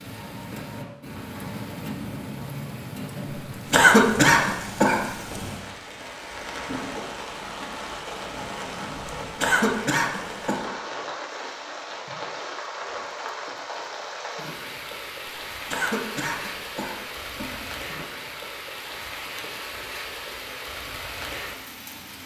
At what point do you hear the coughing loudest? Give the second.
4 s.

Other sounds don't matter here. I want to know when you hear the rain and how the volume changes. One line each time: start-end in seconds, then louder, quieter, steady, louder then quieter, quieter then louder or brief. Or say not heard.
0.0-22.2 steady.